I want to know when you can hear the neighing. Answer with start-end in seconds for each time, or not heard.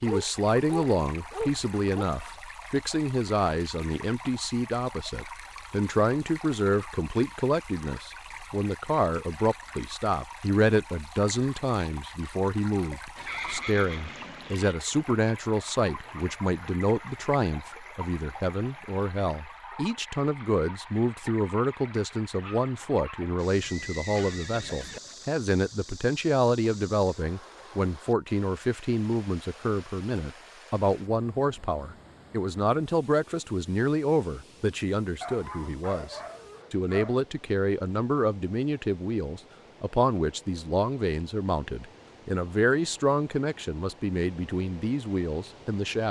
13.2-14.8, 23.6-25.0.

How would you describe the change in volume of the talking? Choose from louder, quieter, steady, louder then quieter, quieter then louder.
steady.